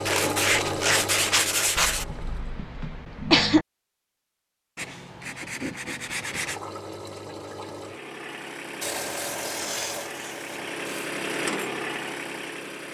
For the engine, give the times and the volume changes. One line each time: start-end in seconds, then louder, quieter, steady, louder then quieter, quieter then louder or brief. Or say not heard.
0.0-2.6 brief
6.1-12.8 louder.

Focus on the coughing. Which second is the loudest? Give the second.
3 s.